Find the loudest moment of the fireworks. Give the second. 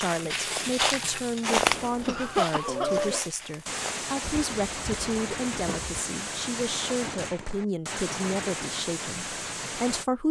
3 s.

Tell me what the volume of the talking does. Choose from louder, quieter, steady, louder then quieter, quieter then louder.
steady.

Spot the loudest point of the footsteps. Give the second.
2 s.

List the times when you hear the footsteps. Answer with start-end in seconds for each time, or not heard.
0.0-6.0.